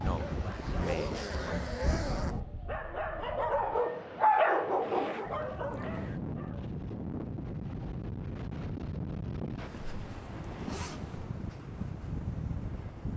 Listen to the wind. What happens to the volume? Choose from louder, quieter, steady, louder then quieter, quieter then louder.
quieter then louder.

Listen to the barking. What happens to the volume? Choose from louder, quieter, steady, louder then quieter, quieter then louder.
louder then quieter.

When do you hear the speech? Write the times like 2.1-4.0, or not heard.
0.0-1.7.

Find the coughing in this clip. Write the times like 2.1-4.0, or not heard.
not heard.